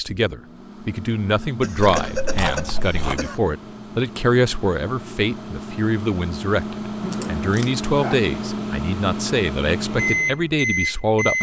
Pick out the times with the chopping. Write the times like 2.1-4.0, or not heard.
not heard.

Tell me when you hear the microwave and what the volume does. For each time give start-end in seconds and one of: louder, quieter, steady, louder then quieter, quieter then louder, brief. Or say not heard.
0.0-11.3 louder.